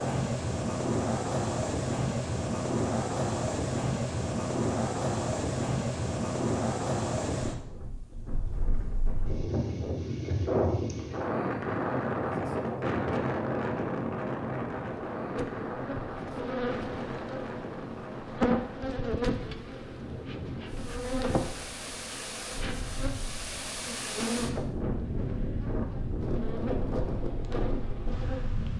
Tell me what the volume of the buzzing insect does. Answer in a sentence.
The volume of the buzzing insect goes up, then down.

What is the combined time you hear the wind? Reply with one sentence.
You can hear the wind for 29 seconds altogether.